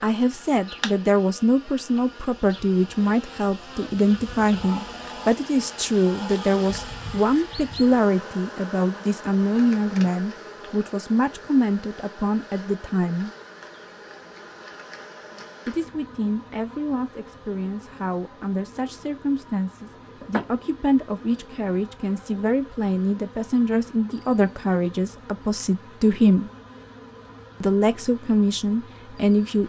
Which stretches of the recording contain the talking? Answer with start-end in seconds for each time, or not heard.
0.0-13.3, 15.7-26.5, 27.6-29.6.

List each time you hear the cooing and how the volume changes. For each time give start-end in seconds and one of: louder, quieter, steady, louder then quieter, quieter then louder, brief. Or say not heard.
not heard.